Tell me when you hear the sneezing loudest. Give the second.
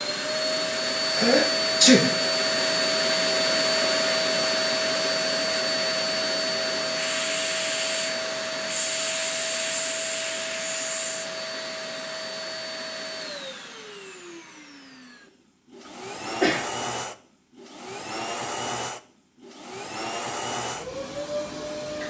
2 s.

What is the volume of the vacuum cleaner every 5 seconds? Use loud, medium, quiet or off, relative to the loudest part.
loud, loud, medium, medium, medium.